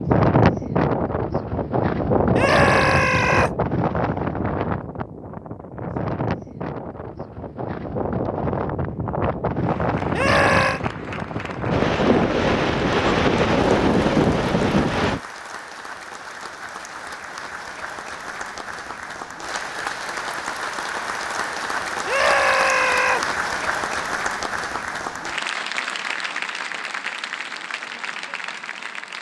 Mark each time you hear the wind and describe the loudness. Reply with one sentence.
You can hear the wind from 0.0 to 15.2 s, getting quieter then louder.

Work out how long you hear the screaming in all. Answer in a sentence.
You can hear the screaming for 3 seconds altogether.